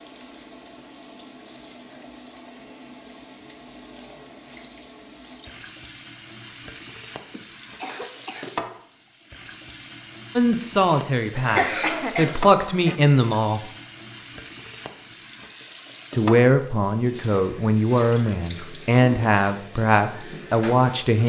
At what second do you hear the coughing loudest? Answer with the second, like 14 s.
12 s.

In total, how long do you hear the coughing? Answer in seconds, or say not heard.
3 s.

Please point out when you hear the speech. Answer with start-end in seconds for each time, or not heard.
10.3-13.6, 16.1-21.2.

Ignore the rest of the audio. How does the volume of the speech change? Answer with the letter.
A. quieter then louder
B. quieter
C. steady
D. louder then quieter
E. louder
C.